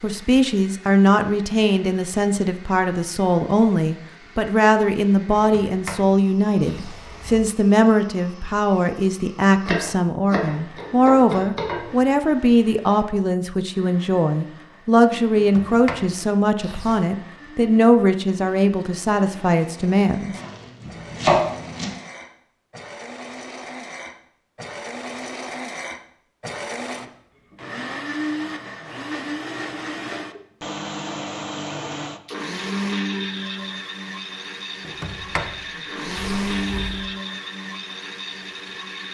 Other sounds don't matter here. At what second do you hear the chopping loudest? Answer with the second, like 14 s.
21 s.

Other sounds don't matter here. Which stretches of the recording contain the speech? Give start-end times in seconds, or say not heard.
0.0-20.4.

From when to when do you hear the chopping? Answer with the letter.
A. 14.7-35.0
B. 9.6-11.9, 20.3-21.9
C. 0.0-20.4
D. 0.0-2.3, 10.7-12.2
B.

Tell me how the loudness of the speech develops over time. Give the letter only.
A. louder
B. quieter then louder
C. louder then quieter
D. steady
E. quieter
D.